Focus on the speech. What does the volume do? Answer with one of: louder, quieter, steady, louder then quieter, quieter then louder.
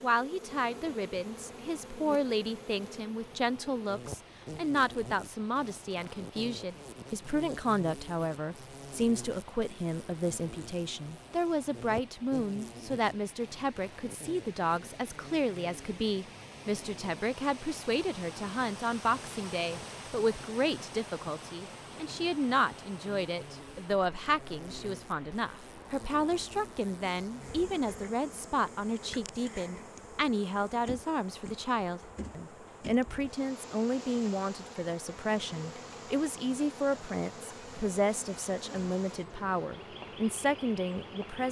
steady.